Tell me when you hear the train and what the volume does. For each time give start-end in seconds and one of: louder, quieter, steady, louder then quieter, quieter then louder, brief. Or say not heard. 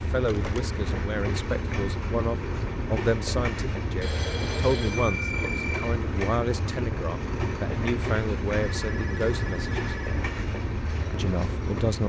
0.0-12.0 steady.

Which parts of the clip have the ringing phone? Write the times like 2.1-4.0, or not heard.
0.2-0.7, 4.0-6.0, 8.7-10.3.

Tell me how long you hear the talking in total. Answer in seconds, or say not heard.
11 s.